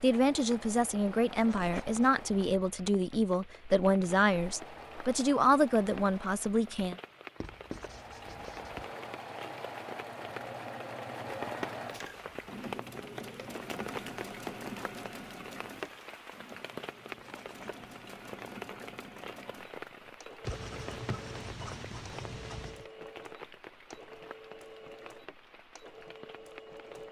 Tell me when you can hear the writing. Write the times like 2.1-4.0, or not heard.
1.6-2.1, 7.4-8.9, 17.1-17.9, 20.4-22.9.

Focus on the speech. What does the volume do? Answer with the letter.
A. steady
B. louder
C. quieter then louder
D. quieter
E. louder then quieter
A.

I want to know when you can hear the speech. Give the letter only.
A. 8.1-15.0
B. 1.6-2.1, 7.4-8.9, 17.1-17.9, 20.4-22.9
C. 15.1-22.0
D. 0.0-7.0
D.